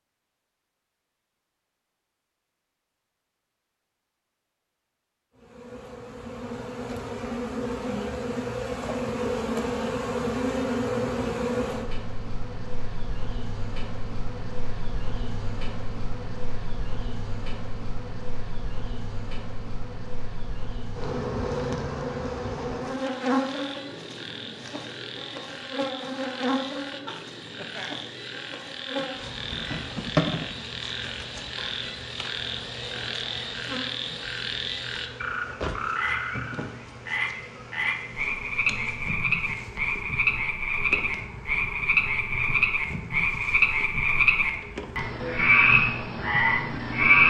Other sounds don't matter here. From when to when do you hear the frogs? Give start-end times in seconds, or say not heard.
22.9-47.2.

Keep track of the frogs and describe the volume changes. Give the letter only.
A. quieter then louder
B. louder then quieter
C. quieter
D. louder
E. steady
D.